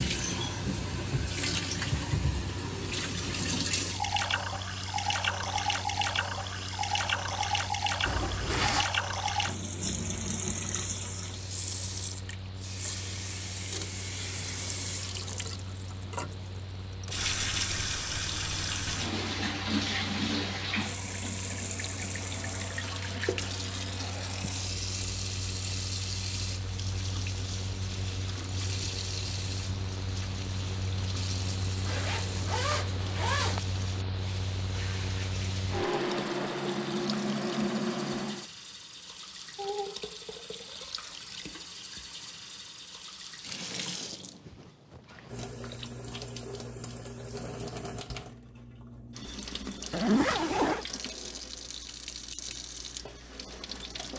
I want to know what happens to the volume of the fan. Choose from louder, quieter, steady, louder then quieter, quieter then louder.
louder.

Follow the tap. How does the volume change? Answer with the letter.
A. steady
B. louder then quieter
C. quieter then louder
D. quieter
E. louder
D.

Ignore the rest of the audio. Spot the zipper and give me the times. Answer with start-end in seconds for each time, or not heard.
8.1-8.9, 31.9-33.6, 49.9-50.9.